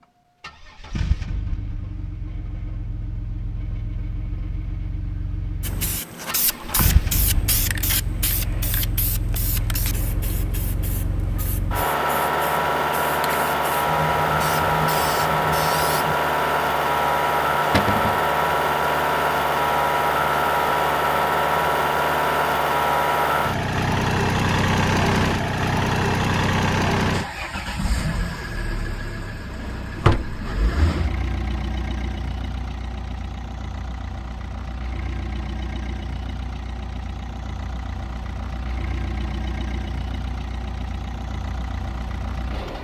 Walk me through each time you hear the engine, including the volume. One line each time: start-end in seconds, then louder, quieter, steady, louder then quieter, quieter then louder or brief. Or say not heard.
0.4-42.8 louder then quieter.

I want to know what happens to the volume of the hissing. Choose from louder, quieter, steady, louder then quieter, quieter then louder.
quieter then louder.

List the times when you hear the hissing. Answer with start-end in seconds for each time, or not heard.
5.6-16.1.